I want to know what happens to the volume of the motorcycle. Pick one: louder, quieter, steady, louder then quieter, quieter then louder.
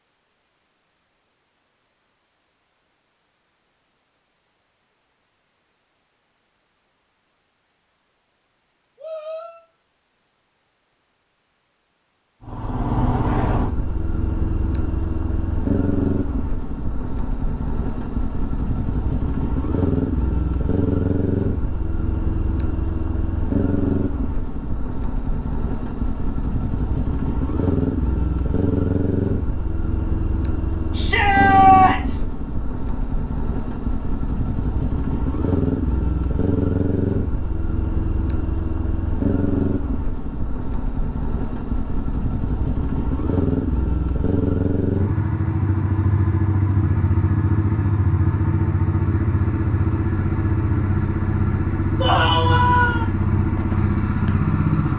steady.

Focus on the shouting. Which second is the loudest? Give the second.
32 s.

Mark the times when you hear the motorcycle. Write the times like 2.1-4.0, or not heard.
12.4-54.9.